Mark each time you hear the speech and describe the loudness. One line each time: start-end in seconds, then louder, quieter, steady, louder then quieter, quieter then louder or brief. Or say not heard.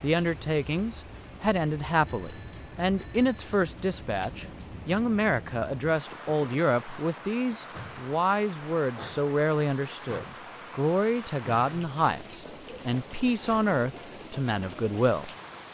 0.0-15.7 steady.